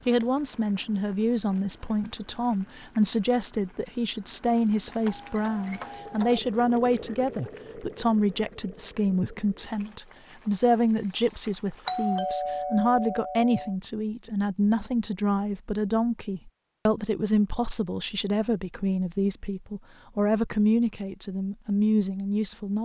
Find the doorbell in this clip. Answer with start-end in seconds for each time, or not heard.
4.9-6.4, 11.8-13.8.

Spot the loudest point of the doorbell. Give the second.
12 s.